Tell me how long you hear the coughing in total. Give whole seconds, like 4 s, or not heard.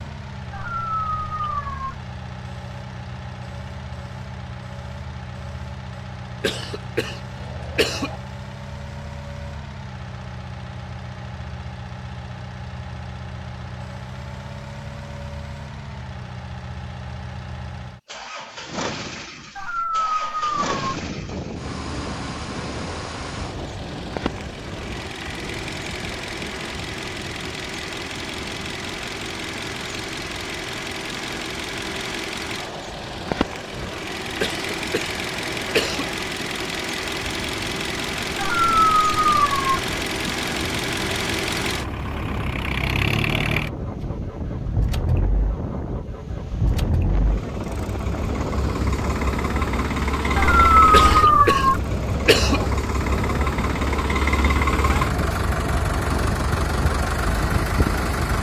5 s.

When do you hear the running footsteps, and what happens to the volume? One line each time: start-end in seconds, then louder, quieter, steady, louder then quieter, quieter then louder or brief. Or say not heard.
not heard.